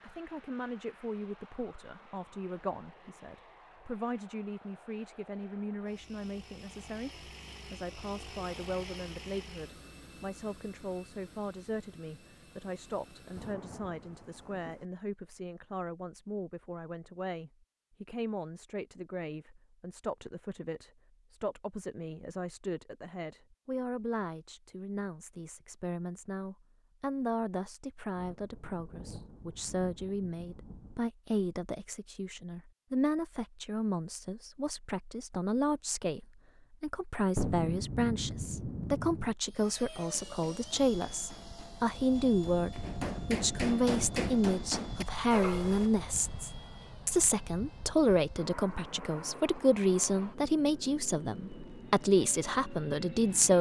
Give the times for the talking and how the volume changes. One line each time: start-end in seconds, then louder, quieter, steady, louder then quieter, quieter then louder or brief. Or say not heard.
0.0-53.5 louder.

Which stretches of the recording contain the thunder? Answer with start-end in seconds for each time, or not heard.
13.3-14.8, 28.1-31.1, 37.4-39.4.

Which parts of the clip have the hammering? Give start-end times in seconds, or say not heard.
40.0-45.9.